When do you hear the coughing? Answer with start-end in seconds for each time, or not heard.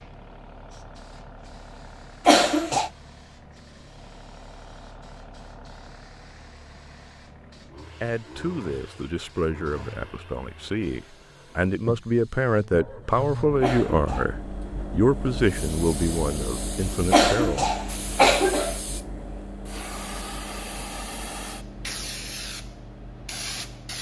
2.2-2.9, 13.6-14.3, 17.1-18.8.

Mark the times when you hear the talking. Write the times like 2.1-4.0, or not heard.
8.0-17.7.